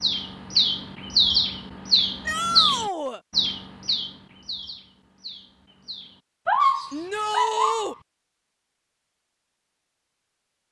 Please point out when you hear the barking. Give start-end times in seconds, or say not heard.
6.5-8.0.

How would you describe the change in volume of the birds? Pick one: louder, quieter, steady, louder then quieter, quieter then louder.
quieter.